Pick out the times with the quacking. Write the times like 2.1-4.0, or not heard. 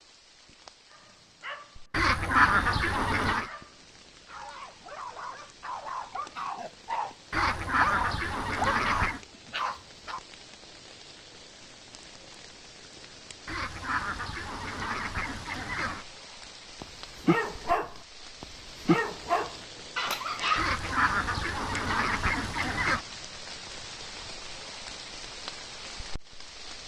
1.9-3.5, 7.3-9.2, 13.4-16.1, 20.6-23.1.